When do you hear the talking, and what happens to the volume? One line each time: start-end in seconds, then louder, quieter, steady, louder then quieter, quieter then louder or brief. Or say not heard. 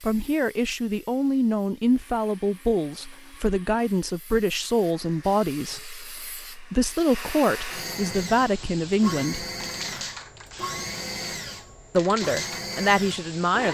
0.0-9.4 steady
11.9-13.6 brief.